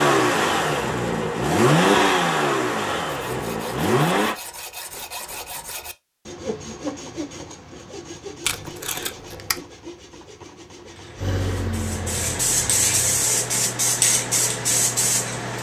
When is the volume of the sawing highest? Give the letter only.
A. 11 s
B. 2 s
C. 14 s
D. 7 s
D.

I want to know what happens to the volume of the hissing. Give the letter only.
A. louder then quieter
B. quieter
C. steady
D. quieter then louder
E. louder
E.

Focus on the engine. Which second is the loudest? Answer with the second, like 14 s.
2 s.